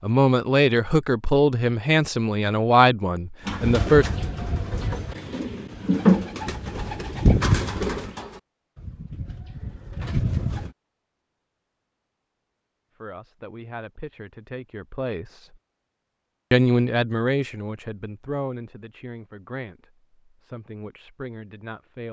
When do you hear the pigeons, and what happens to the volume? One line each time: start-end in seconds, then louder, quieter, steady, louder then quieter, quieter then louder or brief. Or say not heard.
3.5-10.7 louder then quieter.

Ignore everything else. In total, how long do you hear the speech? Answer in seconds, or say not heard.
12 s.